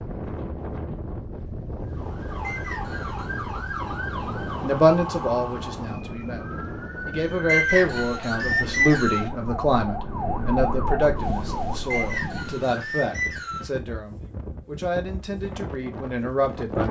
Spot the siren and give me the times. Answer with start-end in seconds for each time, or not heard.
1.9-12.6.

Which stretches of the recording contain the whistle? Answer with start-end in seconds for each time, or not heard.
2.4-3.3, 7.5-9.3, 11.9-13.7.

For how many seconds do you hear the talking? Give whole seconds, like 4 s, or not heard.
12 s.